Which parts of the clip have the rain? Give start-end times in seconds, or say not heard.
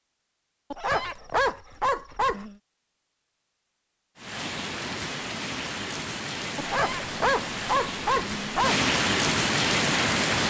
4.2-10.4.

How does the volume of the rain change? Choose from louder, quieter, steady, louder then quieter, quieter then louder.
louder.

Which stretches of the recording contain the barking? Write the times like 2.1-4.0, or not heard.
0.7-2.5, 6.5-8.8.